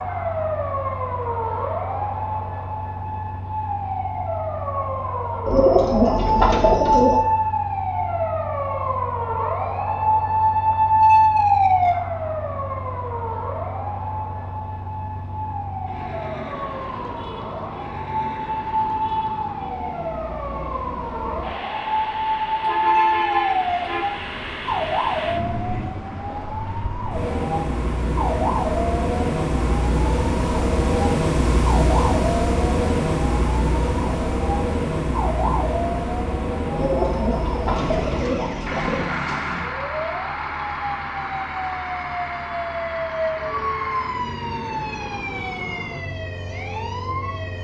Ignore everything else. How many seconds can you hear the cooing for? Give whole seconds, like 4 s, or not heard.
4 s.